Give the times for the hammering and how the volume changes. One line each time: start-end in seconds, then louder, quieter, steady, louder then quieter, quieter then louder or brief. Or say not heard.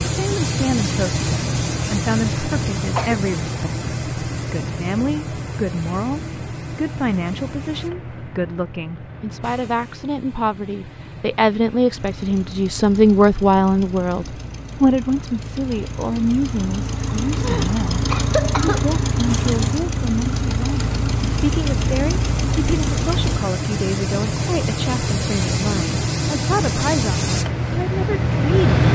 not heard.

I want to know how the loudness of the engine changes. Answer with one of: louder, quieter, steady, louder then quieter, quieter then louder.
louder.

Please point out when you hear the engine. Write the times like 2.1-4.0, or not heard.
11.9-23.4.